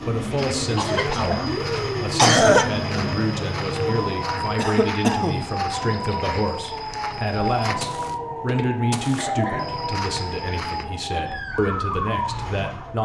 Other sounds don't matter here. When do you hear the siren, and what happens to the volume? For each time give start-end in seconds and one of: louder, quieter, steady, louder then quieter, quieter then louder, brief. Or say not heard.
0.0-12.9 steady.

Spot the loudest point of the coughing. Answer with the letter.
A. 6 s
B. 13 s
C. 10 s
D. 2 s
D.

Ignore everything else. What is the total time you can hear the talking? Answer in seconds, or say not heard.
13 s.